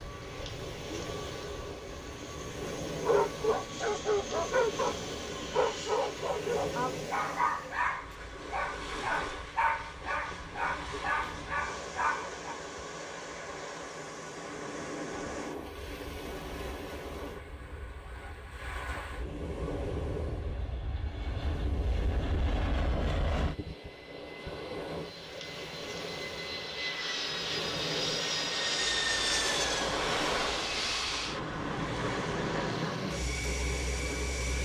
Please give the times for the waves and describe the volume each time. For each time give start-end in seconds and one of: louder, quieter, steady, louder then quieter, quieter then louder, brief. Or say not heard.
0.0-34.6 steady.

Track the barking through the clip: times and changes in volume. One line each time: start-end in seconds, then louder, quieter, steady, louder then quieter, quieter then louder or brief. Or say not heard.
3.0-12.6 steady.